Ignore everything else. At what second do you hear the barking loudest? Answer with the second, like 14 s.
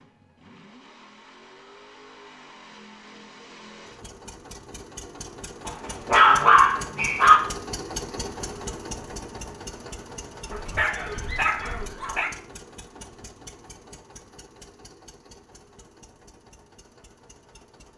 6 s.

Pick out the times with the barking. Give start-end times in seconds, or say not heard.
5.7-7.4, 10.5-12.3.